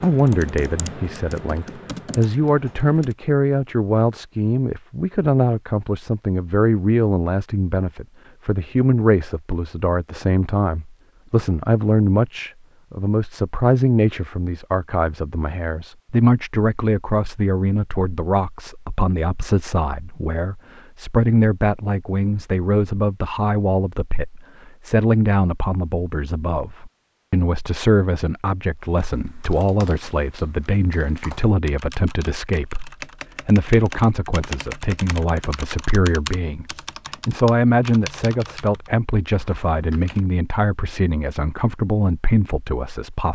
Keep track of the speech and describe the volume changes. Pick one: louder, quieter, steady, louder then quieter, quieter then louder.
steady.